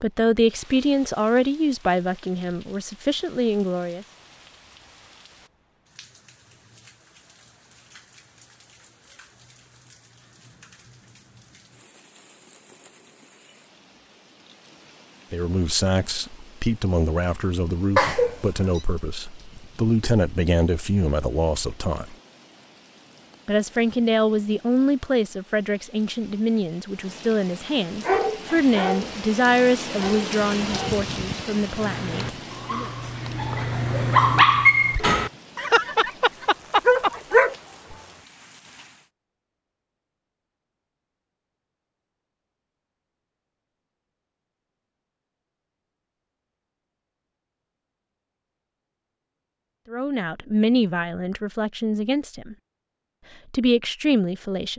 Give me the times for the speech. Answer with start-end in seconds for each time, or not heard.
0.0-4.0, 15.3-22.1, 23.4-32.9, 49.9-52.5, 53.5-54.7.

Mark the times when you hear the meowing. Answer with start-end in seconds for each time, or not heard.
17.9-18.8.